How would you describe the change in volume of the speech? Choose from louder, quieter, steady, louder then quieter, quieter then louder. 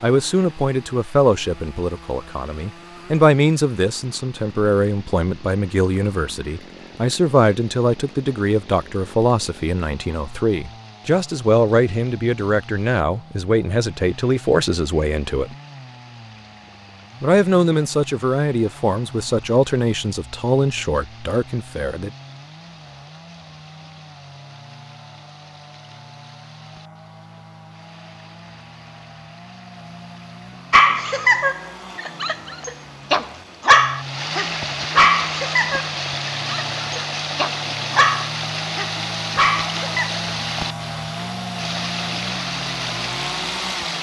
steady.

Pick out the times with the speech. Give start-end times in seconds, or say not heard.
0.0-15.6, 17.2-22.1.